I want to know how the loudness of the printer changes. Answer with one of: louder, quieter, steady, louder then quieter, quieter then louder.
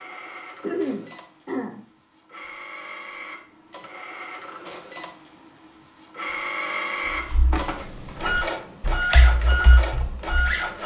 louder.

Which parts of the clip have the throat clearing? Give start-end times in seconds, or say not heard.
0.6-1.8, 7.5-8.3.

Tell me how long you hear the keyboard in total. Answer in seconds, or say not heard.
3 s.